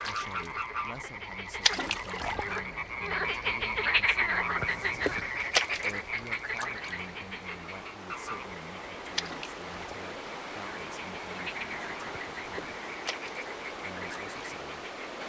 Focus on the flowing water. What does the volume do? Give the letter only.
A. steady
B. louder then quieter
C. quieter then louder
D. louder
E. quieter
D.